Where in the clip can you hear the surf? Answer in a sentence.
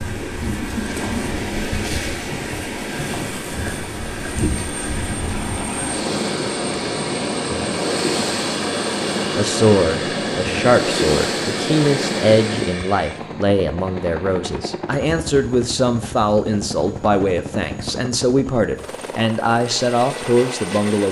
You can hear the surf from 0.0 to 12.8 s.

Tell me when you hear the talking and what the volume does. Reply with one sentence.
You can hear the talking from 9.3 to 21.0 s, at a steady volume.